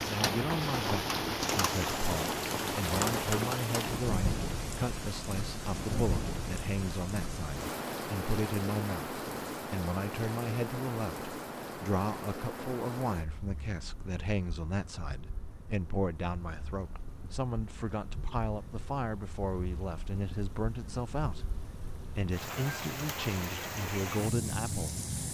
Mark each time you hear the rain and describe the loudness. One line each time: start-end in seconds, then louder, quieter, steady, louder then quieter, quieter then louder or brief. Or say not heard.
0.0-25.3 quieter then louder.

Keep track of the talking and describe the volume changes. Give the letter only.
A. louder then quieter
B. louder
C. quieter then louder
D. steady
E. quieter
D.